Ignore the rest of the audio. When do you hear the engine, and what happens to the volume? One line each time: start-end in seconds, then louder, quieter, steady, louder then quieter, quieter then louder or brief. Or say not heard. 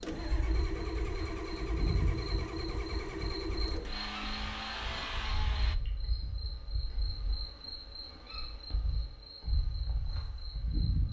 0.0-5.8 steady.